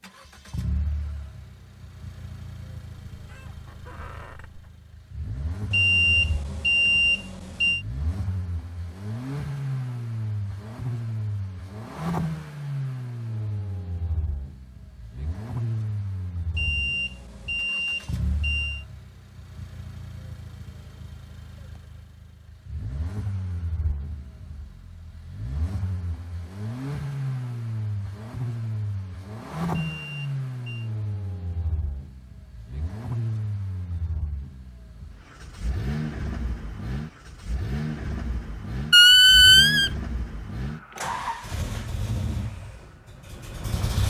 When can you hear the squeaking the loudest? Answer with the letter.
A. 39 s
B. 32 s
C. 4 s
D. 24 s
A.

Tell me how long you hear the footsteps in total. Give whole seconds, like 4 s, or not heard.
not heard.